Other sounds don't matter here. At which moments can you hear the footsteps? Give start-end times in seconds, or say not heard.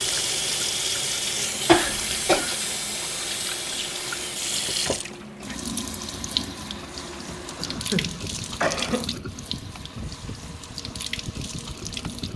not heard.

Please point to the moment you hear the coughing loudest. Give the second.
2 s.